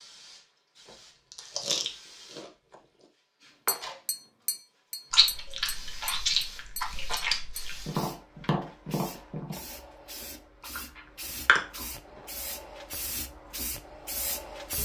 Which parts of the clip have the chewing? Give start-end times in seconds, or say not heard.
1.3-2.5, 5.1-7.9, 10.6-11.7.